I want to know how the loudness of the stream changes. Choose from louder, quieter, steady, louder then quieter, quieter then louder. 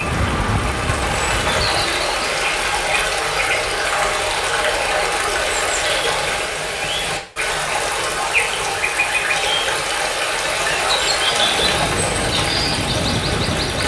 steady.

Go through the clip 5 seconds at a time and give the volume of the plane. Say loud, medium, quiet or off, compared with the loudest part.
loud, off, loud.